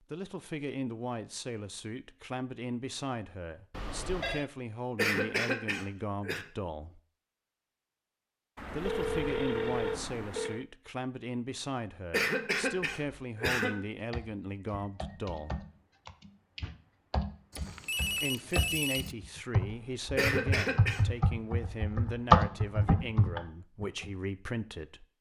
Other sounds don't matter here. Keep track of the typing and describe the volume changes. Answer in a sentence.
The loudness of the typing goes up.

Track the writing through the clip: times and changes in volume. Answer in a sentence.
The writing can't be heard in this clip.